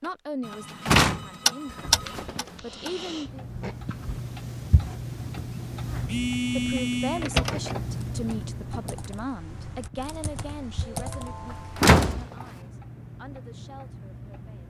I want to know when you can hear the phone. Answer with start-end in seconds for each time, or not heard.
0.4-2.2, 6.0-7.3, 10.9-11.8.